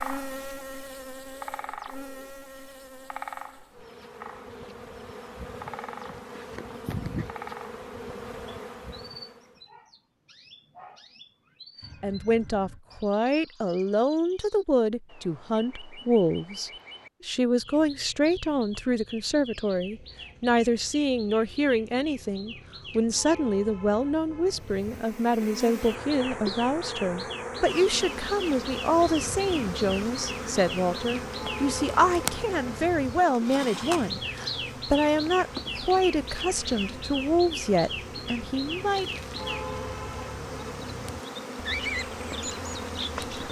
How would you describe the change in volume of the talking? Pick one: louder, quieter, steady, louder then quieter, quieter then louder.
steady.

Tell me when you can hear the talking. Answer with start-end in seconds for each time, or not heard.
12.0-39.1.